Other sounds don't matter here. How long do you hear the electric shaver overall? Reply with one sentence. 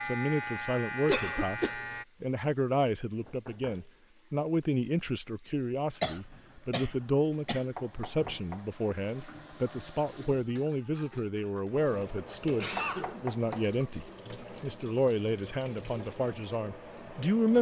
You can hear the electric shaver for 2 seconds altogether.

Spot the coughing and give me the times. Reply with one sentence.
You can hear the coughing from 1.1 to 1.8 s, from 6.0 to 7.6 s and from 11.8 to 13.3 s.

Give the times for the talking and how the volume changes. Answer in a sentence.
The talking can be heard from 0.0 to 17.5 s, at a steady volume.